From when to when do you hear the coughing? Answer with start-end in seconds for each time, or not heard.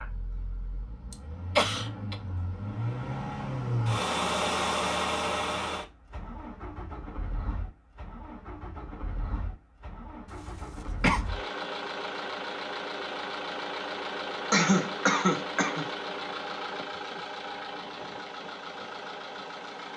1.1-2.1, 10.3-11.2, 14.5-15.9.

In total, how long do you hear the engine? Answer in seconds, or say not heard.
20 s.